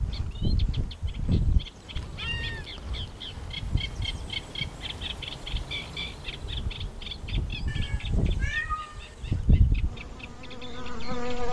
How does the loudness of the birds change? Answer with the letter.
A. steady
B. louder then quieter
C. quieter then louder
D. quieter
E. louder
B.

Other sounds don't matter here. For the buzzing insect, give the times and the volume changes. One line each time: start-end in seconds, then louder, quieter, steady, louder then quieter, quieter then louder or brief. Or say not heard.
0.0-11.4 quieter then louder.